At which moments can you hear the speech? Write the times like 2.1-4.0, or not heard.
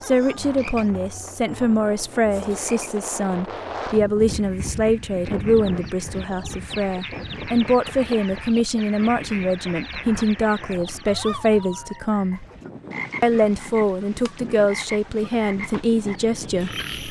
0.0-12.4, 13.2-16.8.